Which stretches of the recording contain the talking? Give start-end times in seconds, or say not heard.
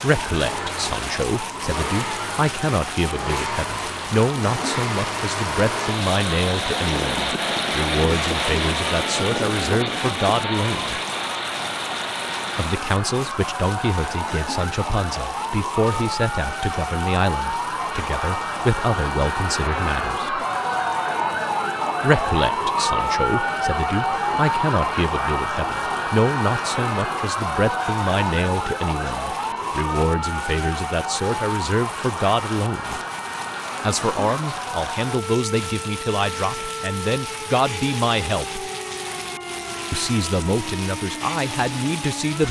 0.0-11.0, 12.6-20.4, 22.0-33.0, 33.8-38.6, 39.9-42.4.